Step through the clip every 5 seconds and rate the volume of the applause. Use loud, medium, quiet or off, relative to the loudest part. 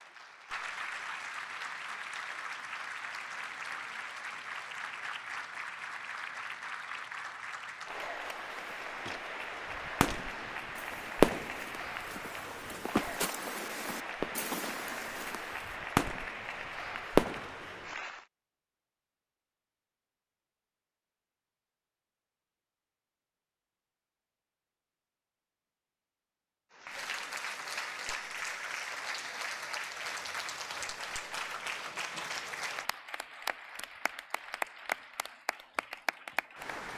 loud, loud, loud, loud, off, loud, loud, loud.